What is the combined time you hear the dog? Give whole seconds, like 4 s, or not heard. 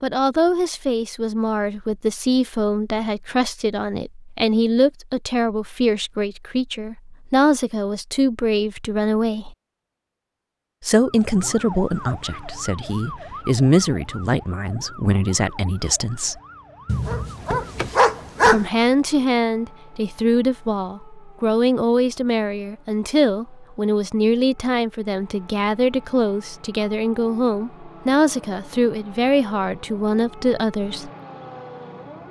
2 s.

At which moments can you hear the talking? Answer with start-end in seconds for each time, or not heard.
0.0-9.6, 10.8-16.4, 18.4-31.1.